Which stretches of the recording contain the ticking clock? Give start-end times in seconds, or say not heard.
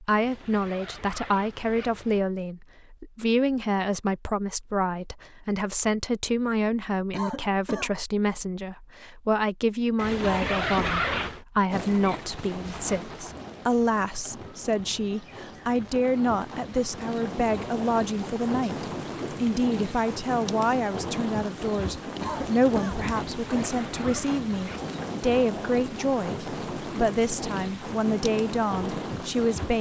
not heard.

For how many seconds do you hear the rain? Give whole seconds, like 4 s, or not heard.
18 s.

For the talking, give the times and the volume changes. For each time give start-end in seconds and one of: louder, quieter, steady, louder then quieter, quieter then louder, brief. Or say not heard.
0.0-29.7 steady.